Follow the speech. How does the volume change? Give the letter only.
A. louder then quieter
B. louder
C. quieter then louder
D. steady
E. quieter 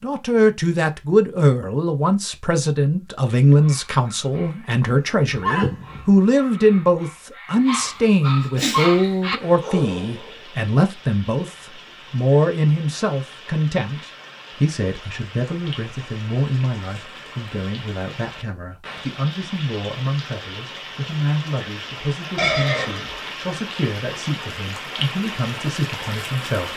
E.